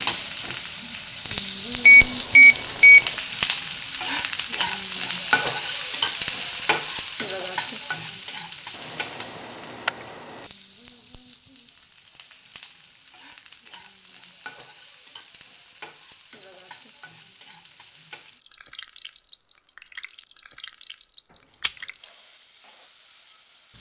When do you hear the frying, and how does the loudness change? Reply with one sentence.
You can hear the frying from 0.0 to 23.7 s, getting quieter.